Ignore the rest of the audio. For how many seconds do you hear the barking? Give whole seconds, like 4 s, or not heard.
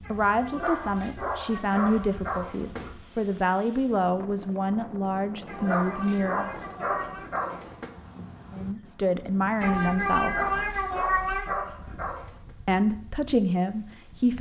7 s.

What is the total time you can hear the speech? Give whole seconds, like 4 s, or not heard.
10 s.